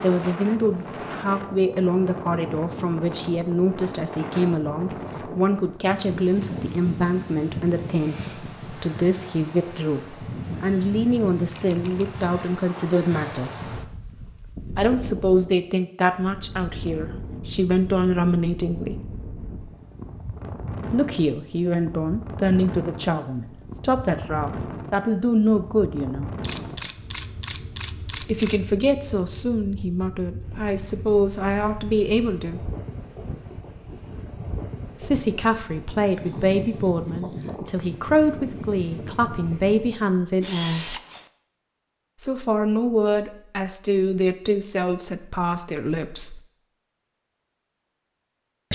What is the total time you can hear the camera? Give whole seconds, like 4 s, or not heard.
4 s.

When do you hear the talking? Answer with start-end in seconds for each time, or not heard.
0.0-13.7, 14.8-18.9, 20.9-26.3, 28.2-32.7, 35.0-41.0, 42.2-46.4.